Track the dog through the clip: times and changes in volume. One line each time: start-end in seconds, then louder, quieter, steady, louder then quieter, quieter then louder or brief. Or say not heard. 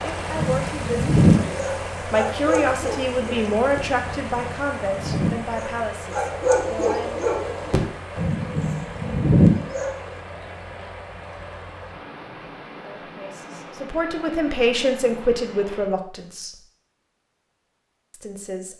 0.3-10.2 quieter then louder.